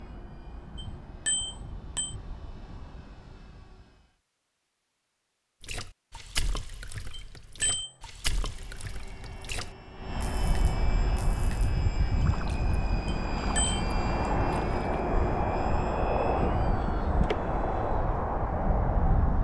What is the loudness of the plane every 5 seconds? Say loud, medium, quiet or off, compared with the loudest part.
quiet, quiet, loud, loud.